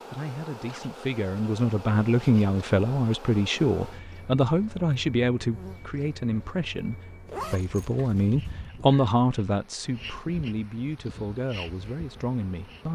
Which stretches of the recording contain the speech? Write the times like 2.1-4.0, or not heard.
0.1-12.8.